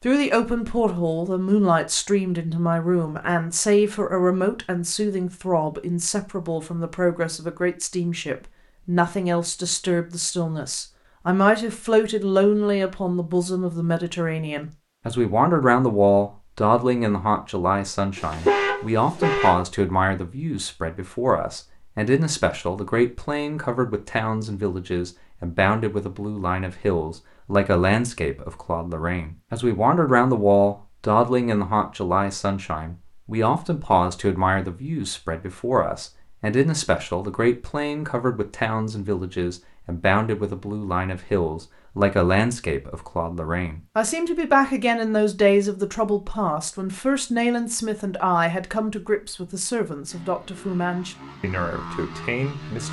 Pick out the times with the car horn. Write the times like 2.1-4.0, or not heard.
18.1-19.6.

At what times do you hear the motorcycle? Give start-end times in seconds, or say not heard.
50.0-52.8.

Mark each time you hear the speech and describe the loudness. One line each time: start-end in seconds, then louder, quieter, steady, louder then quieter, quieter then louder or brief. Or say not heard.
0.0-52.8 steady.